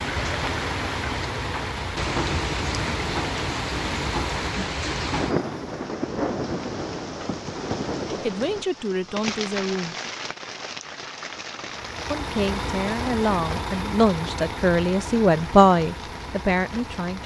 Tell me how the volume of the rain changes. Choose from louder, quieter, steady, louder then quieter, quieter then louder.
quieter.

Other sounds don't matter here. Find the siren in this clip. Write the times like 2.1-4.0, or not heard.
not heard.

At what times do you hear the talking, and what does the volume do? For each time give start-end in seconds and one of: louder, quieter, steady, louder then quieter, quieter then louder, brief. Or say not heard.
8.2-9.9 brief
12.1-17.2 louder then quieter.